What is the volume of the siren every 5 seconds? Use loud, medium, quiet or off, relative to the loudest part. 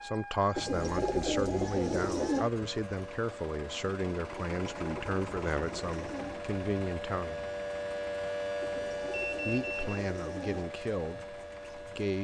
medium, loud, medium.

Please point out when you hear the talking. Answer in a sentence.
You can hear the talking from 0.0 to 7.5 s and from 9.4 to 12.2 s.